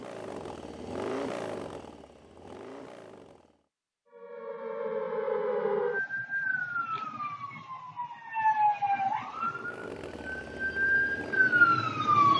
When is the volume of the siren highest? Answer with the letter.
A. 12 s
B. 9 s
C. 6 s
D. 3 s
A.